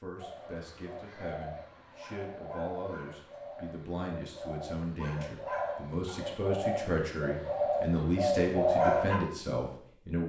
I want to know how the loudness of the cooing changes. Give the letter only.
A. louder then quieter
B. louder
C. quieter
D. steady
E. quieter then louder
B.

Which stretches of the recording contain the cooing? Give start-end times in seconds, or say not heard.
0.1-9.2.